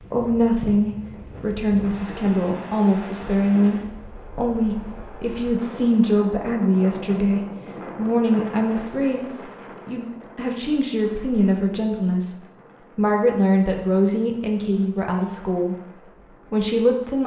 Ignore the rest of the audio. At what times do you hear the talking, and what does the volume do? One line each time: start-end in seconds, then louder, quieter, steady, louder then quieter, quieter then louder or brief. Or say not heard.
0.0-15.9 steady
16.5-17.2 brief.